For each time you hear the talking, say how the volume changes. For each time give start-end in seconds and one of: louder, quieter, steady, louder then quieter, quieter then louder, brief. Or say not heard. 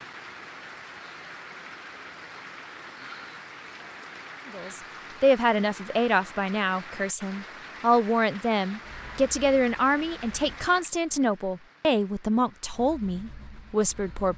4.5-14.3 steady.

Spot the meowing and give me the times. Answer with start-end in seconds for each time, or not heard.
not heard.